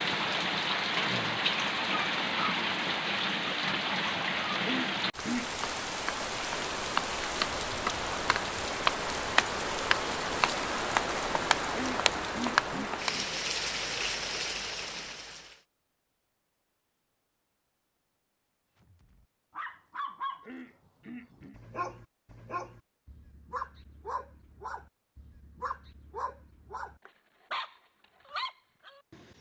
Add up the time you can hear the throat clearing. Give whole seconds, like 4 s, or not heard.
4 s.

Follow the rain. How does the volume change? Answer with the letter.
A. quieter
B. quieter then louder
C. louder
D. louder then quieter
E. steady
E.